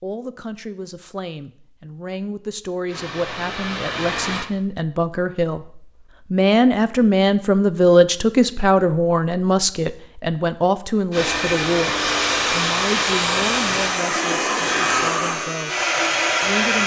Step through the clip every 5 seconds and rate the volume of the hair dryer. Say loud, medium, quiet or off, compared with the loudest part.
medium, off, loud, loud.